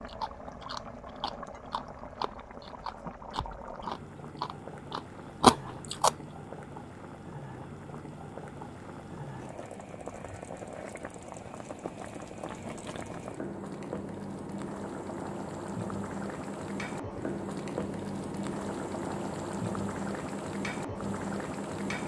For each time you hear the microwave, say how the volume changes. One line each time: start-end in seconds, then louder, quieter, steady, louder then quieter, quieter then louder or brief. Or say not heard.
not heard.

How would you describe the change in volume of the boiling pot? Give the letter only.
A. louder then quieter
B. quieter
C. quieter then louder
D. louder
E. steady
D.